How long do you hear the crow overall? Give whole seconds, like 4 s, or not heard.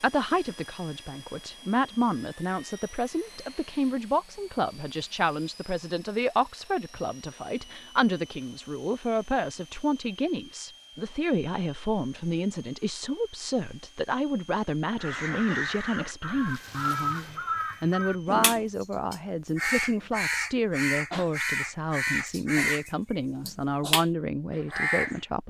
10 s.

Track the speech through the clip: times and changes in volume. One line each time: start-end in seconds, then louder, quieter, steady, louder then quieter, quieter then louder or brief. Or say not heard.
0.0-25.4 steady.